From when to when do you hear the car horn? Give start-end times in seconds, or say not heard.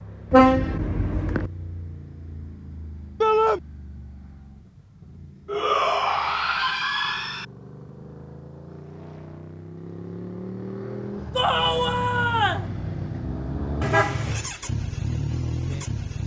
0.3-1.5, 13.8-14.5.